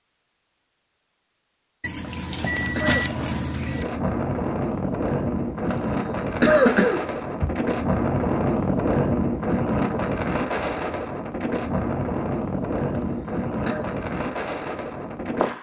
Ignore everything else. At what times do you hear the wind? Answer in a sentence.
You can hear the wind from 3.7 to 15.5 s.